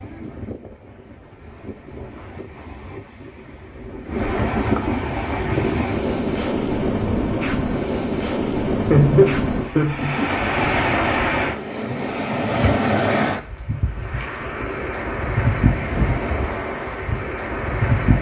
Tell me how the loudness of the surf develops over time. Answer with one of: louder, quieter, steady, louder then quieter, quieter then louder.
louder.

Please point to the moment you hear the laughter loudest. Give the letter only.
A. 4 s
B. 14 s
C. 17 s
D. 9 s
D.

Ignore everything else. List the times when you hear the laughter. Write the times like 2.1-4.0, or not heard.
8.9-10.3.